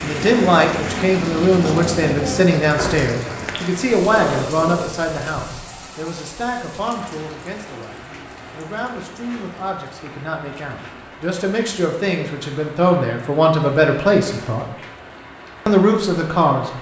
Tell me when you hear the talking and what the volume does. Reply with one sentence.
You can hear the talking from 0.0 to 14.7 s, getting quieter then louder; and briefly from 15.7 to 16.6 s.